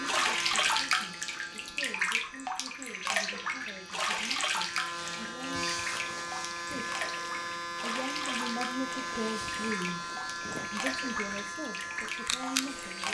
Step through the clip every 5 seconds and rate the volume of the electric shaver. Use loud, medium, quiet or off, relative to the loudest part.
medium, loud, loud.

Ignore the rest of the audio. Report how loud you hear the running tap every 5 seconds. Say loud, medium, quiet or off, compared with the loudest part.
loud, medium, medium.